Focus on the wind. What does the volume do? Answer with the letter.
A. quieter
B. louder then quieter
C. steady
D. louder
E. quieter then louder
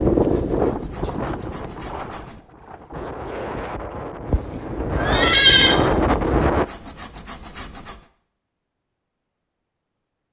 E.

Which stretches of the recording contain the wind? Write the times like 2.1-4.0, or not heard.
0.0-6.7.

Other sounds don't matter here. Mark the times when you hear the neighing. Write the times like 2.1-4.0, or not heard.
4.2-5.8.